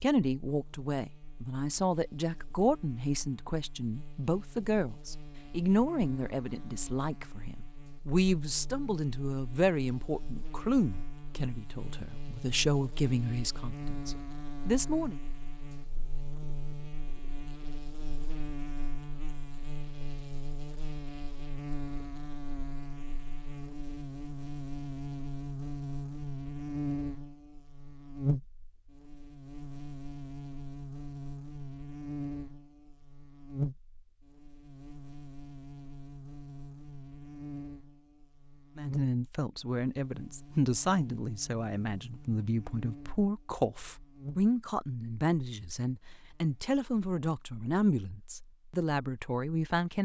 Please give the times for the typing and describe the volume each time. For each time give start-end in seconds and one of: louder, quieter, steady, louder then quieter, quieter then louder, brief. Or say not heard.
not heard.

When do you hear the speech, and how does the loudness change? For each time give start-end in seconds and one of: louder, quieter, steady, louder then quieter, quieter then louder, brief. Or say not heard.
0.0-15.2 steady
38.8-50.0 steady.